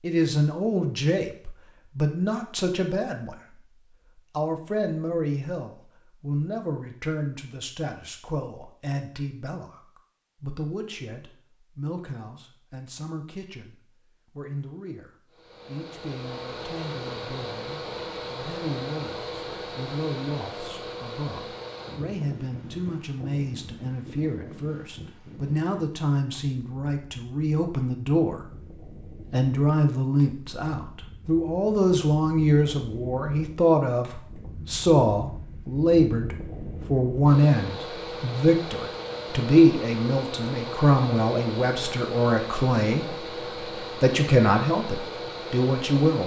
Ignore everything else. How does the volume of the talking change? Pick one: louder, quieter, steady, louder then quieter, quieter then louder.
quieter then louder.